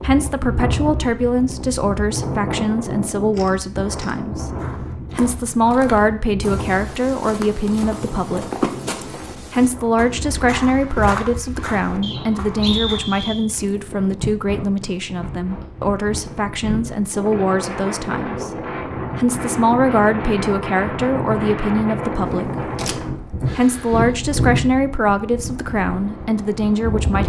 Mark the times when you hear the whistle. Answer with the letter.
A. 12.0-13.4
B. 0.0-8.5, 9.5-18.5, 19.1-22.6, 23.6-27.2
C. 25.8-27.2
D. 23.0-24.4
A.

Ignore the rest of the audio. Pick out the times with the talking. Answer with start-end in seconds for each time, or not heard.
0.0-8.5, 9.5-18.5, 19.1-22.6, 23.6-27.2.